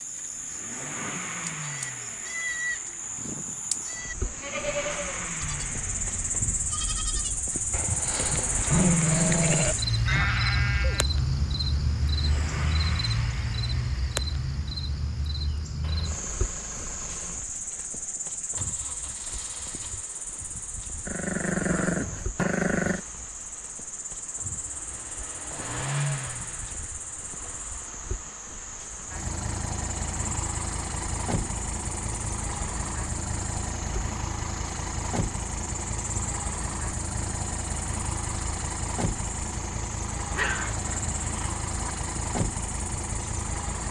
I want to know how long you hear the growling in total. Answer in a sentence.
You can hear the growling for 5 seconds altogether.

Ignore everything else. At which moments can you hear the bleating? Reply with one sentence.
The bleating can be heard from 0.9 to 11.1 s.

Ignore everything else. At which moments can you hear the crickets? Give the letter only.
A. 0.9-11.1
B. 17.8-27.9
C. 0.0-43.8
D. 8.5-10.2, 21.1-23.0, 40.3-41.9
C.